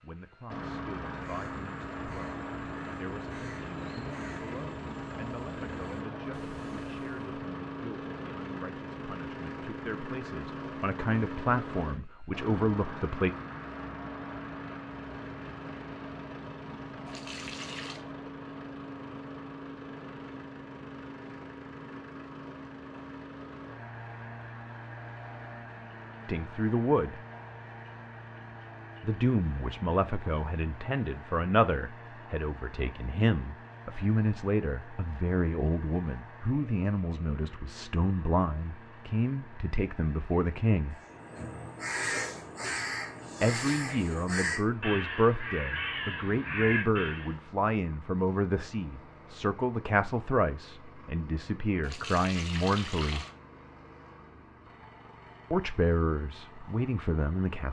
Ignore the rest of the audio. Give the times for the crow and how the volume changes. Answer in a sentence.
You can hear the crow from 1.1 to 7.3 s, at a steady volume; and from 41.0 to 47.4 s, at a steady volume.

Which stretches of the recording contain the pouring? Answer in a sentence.
The pouring can be heard from 17.1 to 18.1 s and from 51.8 to 53.4 s.